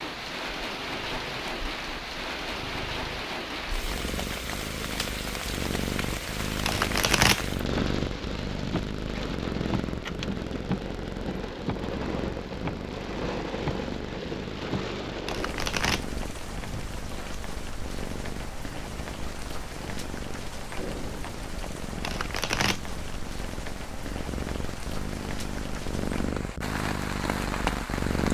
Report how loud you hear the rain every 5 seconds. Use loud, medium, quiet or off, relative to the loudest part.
loud, loud, loud, medium, medium, loud.